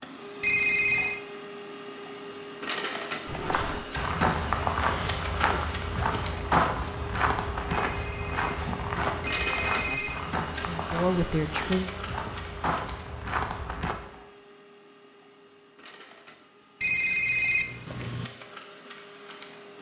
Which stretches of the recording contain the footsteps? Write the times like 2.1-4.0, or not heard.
3.2-13.9.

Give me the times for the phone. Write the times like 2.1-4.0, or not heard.
0.4-1.2, 7.7-10.2, 16.8-18.3.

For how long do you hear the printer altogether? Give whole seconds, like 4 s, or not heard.
20 s.